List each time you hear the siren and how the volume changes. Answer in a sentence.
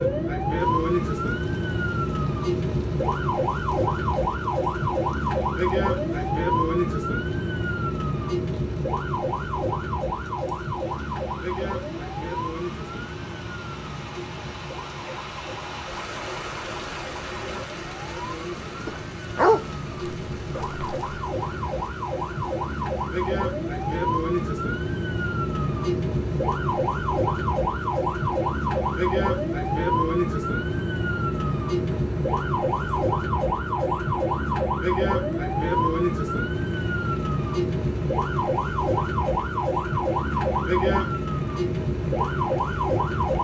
The siren can be heard from 0.0 to 43.3 s, getting quieter then louder.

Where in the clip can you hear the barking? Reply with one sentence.
The barking can be heard from 18.9 to 21.1 s.